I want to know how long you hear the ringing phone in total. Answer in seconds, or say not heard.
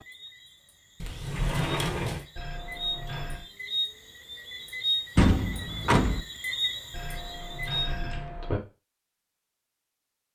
3 s.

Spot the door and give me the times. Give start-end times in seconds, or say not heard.
1.0-2.2, 5.2-6.2.